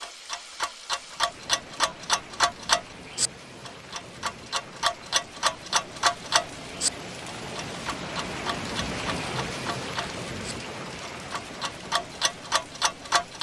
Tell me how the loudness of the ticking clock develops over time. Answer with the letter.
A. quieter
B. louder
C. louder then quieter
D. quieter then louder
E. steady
D.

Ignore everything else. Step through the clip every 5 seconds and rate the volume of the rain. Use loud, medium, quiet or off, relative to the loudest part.
medium, loud, loud.